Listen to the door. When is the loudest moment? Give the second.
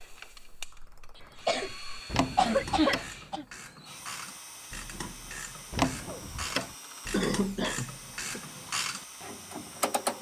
6 s.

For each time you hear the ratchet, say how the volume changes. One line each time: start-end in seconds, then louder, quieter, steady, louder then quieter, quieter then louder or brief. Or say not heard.
0.2-10.1 louder.